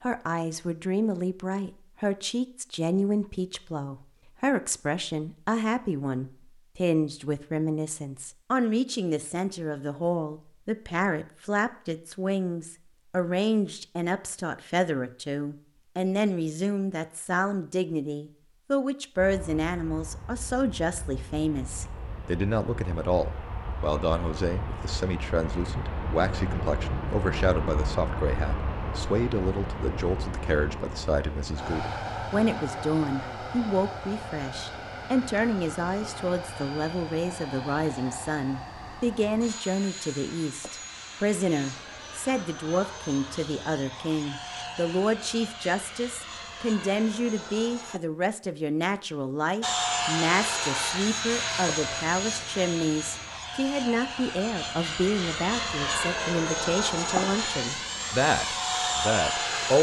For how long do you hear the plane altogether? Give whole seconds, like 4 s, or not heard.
39 s.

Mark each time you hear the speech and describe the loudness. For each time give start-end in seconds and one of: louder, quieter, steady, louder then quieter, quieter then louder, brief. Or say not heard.
0.0-59.7 steady.